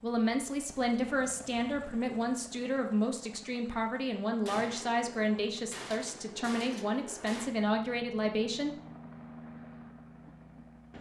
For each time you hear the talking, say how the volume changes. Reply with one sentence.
The talking can be heard from 0.0 to 8.8 s, at a steady volume.